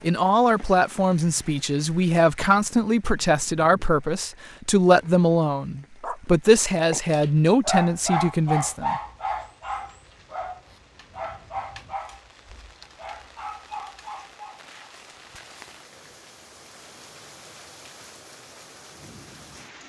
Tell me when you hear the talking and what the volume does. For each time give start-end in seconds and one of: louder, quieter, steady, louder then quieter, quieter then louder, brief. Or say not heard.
0.0-9.0 steady.